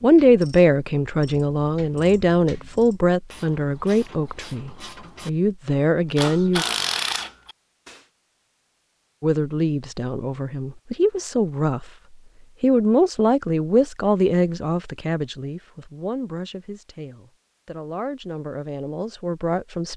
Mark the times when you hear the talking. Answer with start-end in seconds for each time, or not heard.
0.0-6.7, 9.2-11.9, 12.6-19.9.